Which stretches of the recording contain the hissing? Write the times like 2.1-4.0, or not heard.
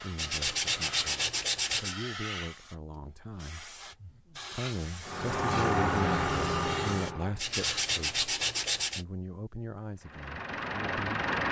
0.0-7.8.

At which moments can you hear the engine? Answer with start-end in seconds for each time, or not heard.
5.0-7.4, 10.1-11.4.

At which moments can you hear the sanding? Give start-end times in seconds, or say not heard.
0.1-1.9, 7.4-9.1.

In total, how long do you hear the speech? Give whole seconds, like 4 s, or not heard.
11 s.